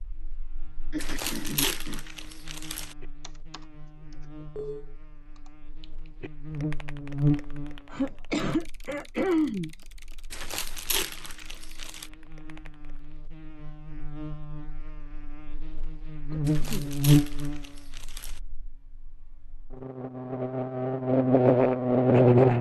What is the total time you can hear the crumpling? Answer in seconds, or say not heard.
6 s.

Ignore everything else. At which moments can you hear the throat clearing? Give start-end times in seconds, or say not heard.
0.9-2.0, 7.9-9.7, 16.3-16.9.